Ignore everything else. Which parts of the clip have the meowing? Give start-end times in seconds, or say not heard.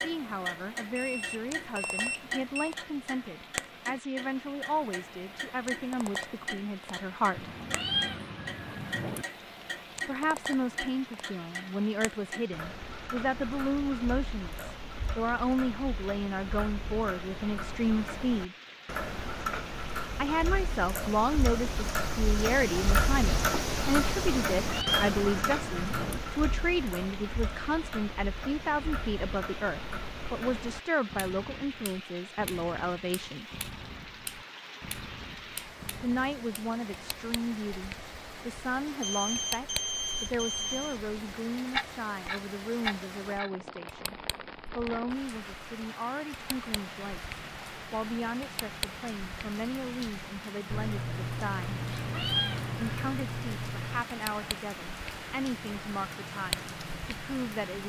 7.3-9.2, 24.5-26.2, 51.8-53.1.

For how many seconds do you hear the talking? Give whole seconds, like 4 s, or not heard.
50 s.